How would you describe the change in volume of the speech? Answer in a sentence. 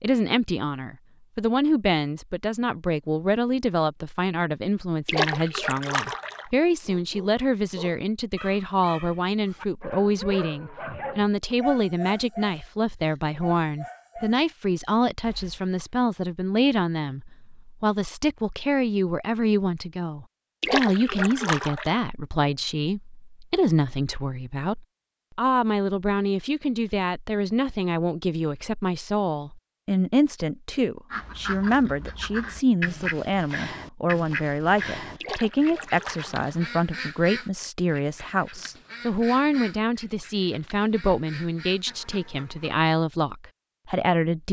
The volume of the speech stays about the same.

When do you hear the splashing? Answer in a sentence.
You can hear the splashing from 5.0 to 6.5 s, from 20.6 to 22.0 s and from 35.2 to 36.6 s.